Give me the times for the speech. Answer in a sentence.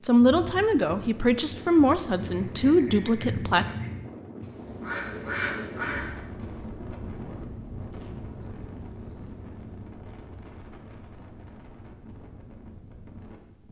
You can hear the speech from 0.0 to 3.6 s.